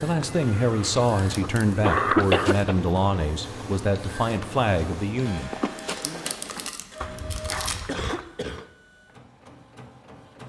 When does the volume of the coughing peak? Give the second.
2 s.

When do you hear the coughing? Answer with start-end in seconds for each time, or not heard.
0.2-2.8, 7.8-8.7.